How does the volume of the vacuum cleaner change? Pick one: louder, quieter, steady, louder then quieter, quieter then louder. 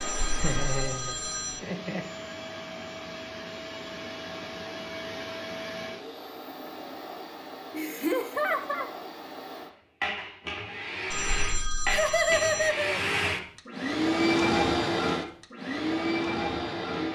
louder.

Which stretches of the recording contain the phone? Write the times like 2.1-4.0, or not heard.
0.0-1.6, 11.1-12.7.